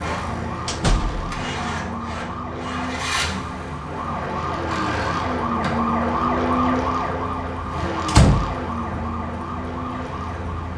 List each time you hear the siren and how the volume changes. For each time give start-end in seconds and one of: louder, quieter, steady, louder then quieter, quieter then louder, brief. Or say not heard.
0.0-10.7 louder then quieter.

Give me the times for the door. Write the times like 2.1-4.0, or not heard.
0.7-1.2, 8.1-9.0.